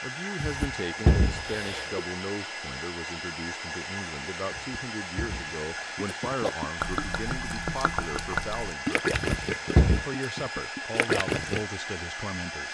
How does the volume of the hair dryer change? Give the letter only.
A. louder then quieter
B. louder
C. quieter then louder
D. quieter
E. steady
E.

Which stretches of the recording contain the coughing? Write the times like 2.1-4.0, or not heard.
0.4-2.0, 4.5-6.5, 9.1-10.1.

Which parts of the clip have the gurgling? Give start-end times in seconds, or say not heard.
6.0-11.7.